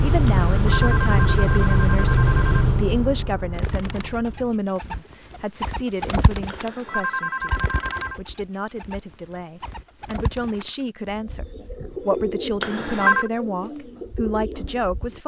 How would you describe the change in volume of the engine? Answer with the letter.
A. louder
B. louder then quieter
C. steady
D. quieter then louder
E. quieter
E.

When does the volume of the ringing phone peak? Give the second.
13 s.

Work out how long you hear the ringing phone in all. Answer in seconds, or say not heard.
5 s.